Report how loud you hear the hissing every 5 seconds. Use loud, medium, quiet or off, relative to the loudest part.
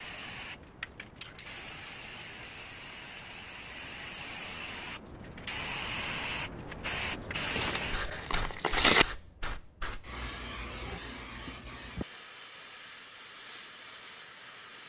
medium, loud, medium.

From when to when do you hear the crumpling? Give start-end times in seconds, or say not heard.
7.5-9.1.